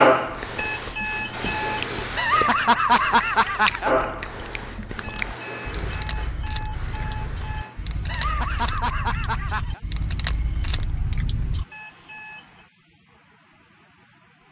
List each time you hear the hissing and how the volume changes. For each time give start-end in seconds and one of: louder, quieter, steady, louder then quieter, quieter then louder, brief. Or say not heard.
0.0-14.4 quieter.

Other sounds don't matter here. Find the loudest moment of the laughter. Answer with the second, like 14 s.
3 s.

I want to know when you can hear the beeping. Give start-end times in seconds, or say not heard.
0.6-1.9, 5.0-7.8, 11.7-12.7.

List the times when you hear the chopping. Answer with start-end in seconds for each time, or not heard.
not heard.